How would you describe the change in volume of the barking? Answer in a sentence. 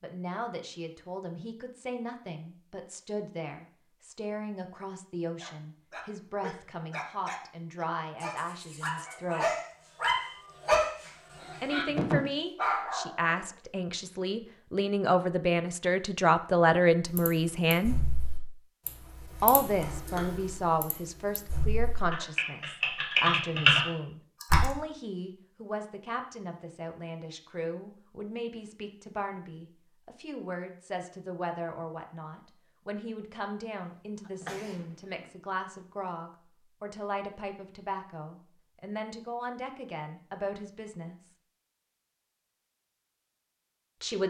The loudness of the barking goes up.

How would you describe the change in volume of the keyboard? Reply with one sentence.
The volume of the keyboard goes down, then up.